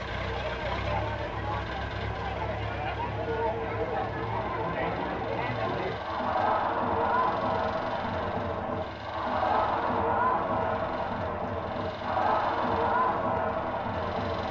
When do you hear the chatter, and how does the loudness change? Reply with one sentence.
You can hear the chatter from 0.0 to 14.4 s, getting louder.